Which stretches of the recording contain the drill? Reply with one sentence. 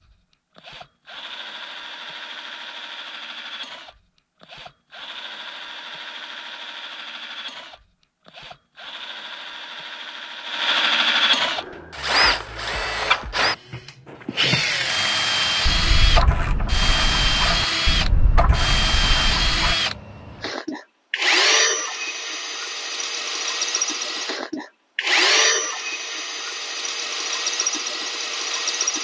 The drill can be heard from 0.1 to 29.0 s.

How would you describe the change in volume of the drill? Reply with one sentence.
The loudness of the drill goes up.